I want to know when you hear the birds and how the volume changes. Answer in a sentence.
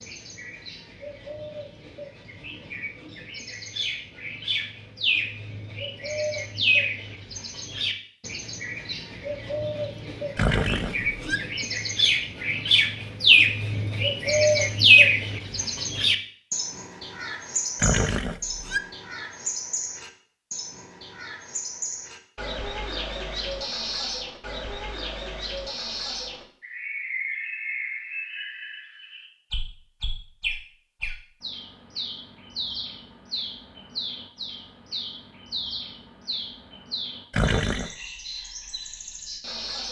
The birds can be heard from 0.0 to 39.8 s, getting louder then quieter.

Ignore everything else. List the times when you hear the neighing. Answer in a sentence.
You can hear the neighing from 10.3 to 11.4 s, from 17.8 to 18.8 s and from 37.3 to 37.9 s.